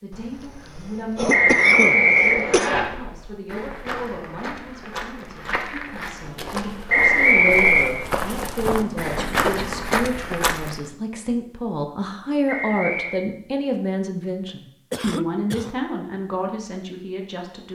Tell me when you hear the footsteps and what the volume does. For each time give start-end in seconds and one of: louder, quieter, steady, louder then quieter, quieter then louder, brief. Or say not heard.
2.5-10.8 louder.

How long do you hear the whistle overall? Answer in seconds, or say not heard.
3 s.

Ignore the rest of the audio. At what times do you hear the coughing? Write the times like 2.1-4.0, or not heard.
0.1-2.7, 8.7-10.1, 14.9-15.8.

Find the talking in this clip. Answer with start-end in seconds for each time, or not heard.
0.0-17.6.